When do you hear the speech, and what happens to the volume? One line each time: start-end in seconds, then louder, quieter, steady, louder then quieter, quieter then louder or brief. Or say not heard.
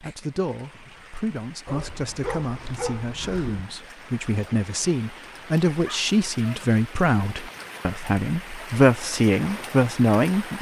0.0-10.5 louder.